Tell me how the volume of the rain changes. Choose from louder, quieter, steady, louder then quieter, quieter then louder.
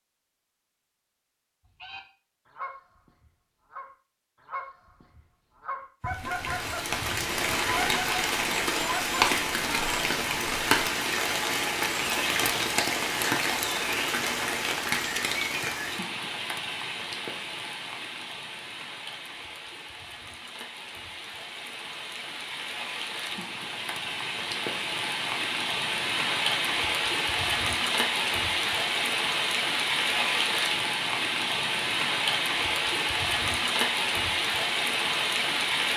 quieter then louder.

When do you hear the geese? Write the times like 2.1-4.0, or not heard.
1.8-10.7.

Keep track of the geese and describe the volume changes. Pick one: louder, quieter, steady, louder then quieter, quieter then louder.
louder.